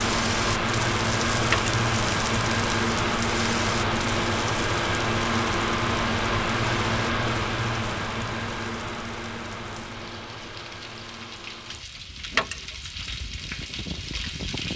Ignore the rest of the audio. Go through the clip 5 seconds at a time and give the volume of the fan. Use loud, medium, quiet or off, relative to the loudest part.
loud, loud, quiet.